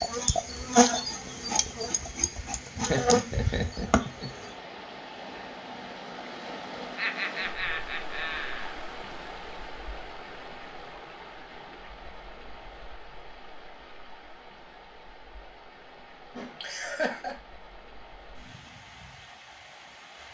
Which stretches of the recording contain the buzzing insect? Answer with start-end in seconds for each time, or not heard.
0.0-4.5.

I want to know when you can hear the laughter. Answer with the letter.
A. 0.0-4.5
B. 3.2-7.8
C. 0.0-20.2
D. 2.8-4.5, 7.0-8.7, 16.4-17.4
D.